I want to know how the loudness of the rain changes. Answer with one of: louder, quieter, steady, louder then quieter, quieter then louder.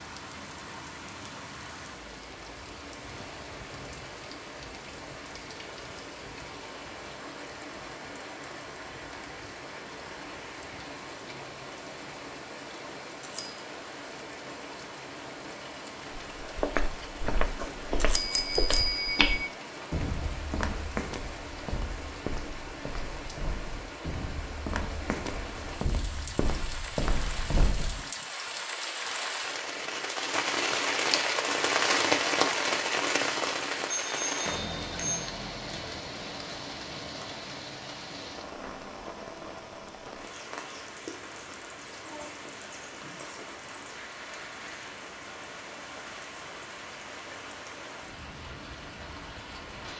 louder then quieter.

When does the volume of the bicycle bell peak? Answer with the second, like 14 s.
19 s.